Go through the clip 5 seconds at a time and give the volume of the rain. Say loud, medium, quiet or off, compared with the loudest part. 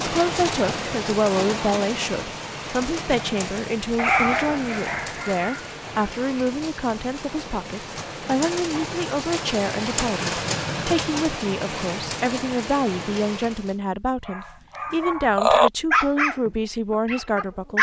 loud, loud, loud, off.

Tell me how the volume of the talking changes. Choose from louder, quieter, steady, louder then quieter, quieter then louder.
steady.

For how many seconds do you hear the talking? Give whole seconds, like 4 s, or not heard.
18 s.